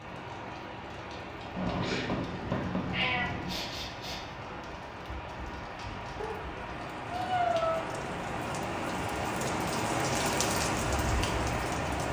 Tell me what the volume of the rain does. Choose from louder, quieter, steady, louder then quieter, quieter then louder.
louder.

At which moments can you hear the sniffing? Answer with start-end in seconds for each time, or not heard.
3.5-4.3.